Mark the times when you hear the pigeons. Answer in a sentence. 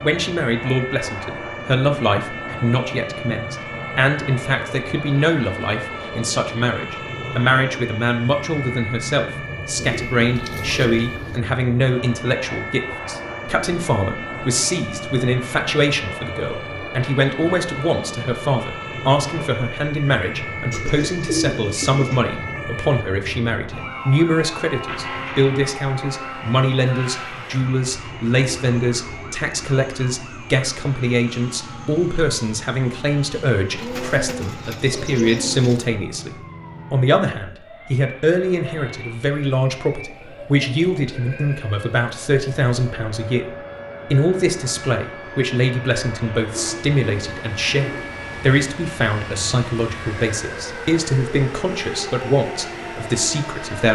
The pigeons can be heard from 9.8 to 11.4 s, from 20.7 to 22.2 s, from 33.7 to 35.9 s and from 46.5 to 48.1 s.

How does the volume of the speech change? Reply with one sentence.
The volume of the speech stays about the same.